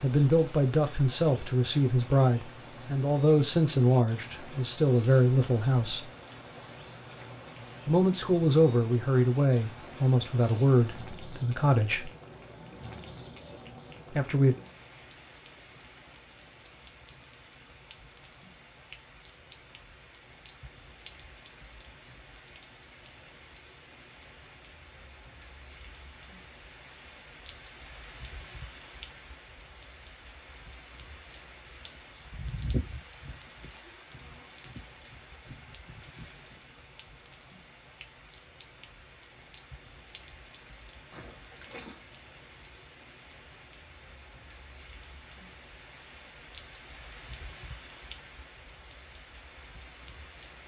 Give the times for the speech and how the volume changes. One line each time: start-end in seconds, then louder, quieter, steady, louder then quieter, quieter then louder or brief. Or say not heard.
0.0-6.0 steady
7.8-12.1 quieter
14.1-14.6 brief.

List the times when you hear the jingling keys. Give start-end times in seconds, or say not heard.
41.1-42.8.